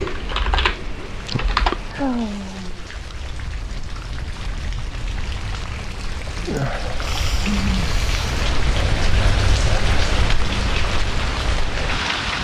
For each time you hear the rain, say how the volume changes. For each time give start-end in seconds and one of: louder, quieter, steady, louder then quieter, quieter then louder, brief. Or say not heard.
0.0-12.3 louder.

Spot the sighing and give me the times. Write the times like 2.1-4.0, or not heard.
1.9-2.9, 6.5-8.3.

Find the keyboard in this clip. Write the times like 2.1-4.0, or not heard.
0.0-2.1.